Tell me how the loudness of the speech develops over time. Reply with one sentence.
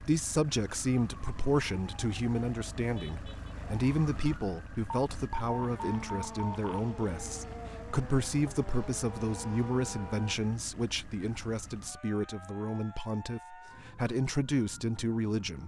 The loudness of the speech stays about the same.